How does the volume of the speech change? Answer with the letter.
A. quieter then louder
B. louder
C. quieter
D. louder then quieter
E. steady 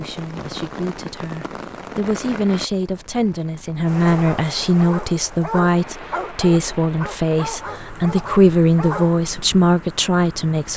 B.